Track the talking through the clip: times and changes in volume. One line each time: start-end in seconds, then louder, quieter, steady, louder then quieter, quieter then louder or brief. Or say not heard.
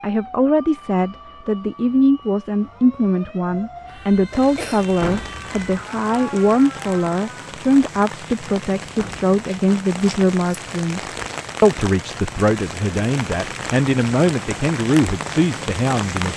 0.0-16.3 steady.